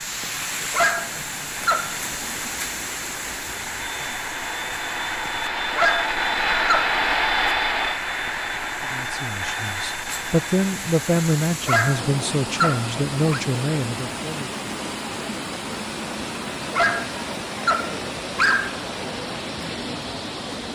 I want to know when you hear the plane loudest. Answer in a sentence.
The loudest moment of the plane is at 7 seconds.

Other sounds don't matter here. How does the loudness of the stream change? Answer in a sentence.
The loudness of the stream goes down, then up.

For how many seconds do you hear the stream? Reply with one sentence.
You can hear the stream for 21 seconds altogether.